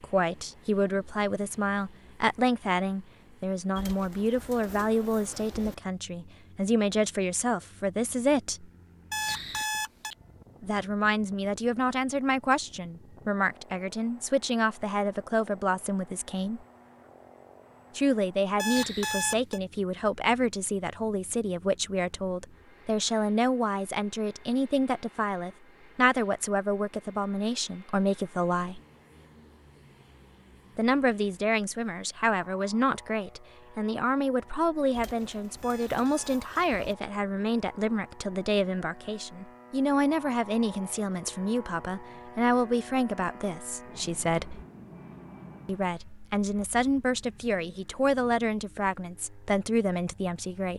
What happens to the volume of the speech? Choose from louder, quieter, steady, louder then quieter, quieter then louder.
steady.